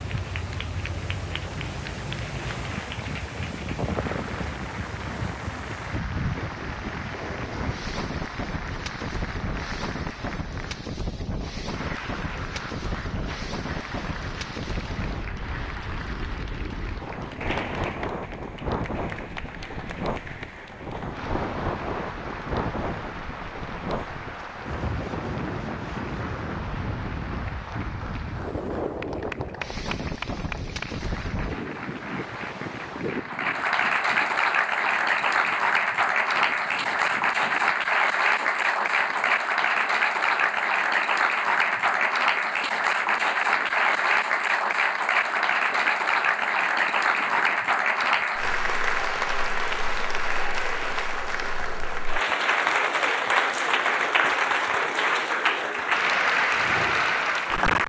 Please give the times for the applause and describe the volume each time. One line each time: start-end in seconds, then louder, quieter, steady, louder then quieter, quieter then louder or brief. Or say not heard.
0.0-57.8 louder.